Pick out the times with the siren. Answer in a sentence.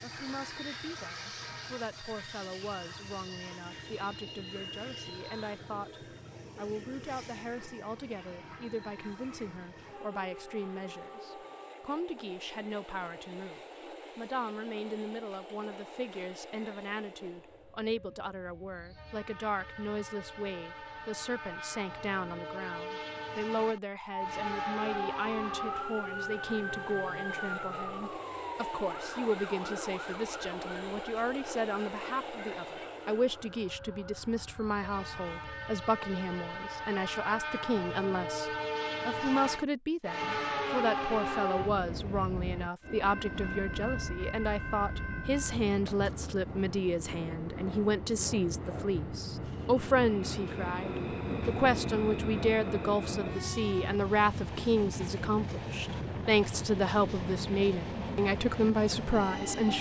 You can hear the siren from 24.1 to 35.5 s.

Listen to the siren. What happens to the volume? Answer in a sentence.
The loudness of the siren goes down.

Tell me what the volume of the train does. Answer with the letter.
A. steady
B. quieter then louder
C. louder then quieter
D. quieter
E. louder
E.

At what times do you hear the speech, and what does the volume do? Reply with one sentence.
The speech can be heard from 0.0 to 59.7 s, getting louder.